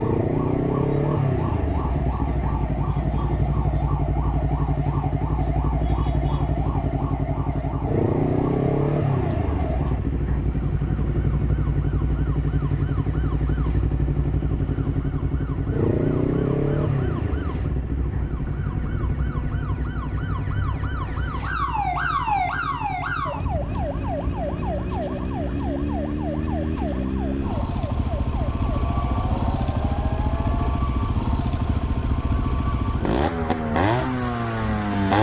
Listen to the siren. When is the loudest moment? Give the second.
22 s.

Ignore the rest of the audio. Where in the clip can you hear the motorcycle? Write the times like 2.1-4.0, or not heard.
0.0-35.1.